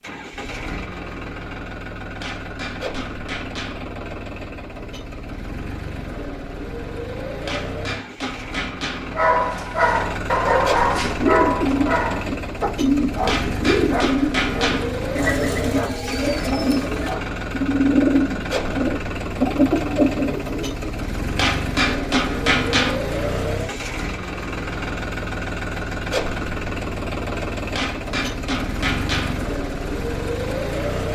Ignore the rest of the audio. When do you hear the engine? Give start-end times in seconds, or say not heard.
0.0-31.1.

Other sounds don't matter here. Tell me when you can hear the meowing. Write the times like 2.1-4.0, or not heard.
not heard.